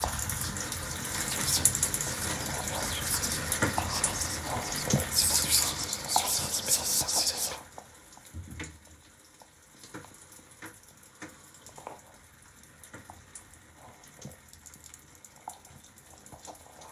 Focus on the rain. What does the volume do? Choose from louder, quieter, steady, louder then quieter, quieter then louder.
quieter.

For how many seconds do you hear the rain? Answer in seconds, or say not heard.
17 s.